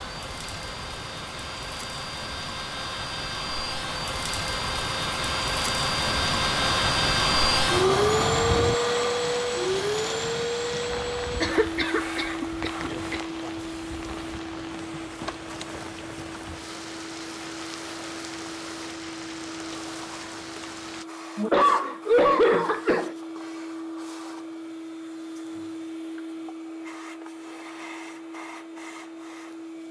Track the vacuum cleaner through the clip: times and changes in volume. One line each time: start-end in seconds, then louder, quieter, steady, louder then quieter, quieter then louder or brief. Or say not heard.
0.0-29.8 louder then quieter.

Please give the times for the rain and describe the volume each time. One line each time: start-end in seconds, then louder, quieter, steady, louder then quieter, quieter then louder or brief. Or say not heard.
0.0-21.1 louder then quieter.